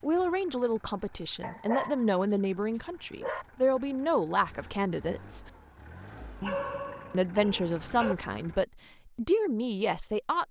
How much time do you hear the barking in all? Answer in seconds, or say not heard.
4 s.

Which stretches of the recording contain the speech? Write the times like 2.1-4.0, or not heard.
0.0-5.5, 7.1-10.4.